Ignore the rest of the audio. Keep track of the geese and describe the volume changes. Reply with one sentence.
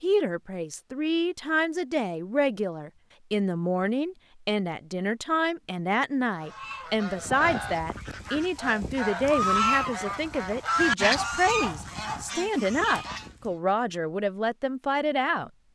The volume of the geese goes up, then down.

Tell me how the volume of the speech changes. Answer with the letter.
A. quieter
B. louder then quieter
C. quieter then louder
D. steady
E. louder
D.